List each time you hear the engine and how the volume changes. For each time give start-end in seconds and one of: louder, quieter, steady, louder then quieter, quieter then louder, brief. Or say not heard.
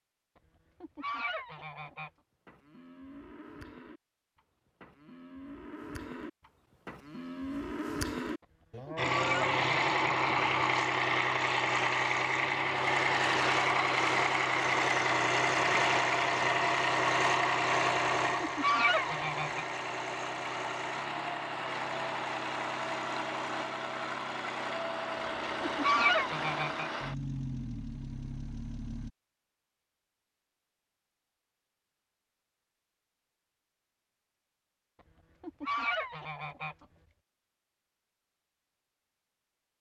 8.9-29.1 quieter.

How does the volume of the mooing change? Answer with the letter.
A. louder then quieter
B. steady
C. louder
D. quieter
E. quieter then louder
C.